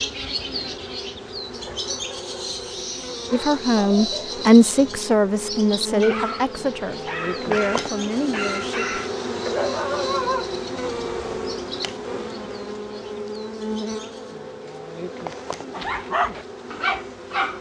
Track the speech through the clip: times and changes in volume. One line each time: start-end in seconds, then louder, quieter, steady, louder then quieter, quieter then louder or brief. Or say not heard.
3.3-9.0 quieter.